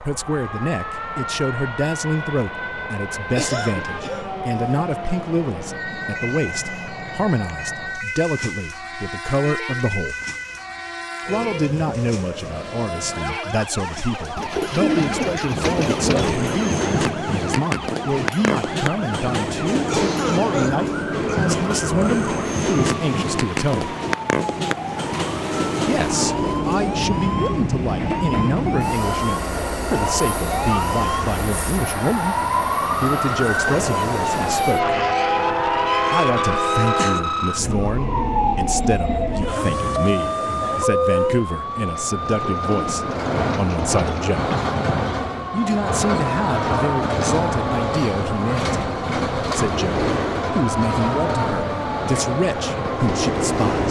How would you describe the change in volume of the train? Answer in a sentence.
The volume of the train goes up.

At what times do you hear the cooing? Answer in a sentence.
You can hear the cooing from 14.3 to 16.4 s and from 42.4 to 44.2 s.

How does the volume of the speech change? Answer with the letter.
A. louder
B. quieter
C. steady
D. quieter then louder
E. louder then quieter
C.